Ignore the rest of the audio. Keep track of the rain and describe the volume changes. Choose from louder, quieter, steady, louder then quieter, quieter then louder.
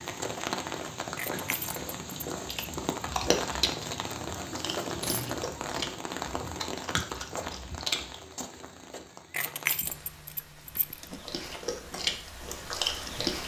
quieter.